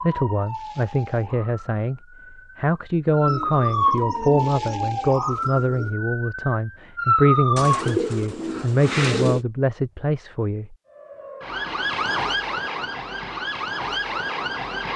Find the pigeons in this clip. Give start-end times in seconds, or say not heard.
3.2-6.0, 7.5-9.4.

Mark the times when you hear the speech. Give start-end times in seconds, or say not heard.
0.0-10.8.